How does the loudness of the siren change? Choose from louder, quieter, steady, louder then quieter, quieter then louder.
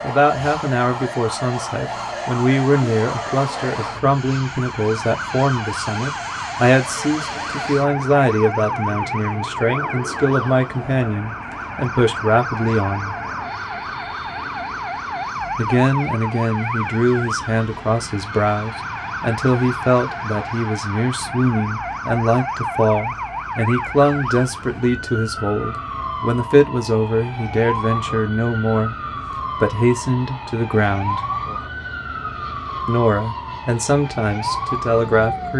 steady.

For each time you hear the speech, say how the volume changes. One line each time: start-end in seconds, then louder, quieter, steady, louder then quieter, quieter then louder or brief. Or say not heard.
0.0-13.2 steady
15.6-31.2 steady
32.9-35.5 brief.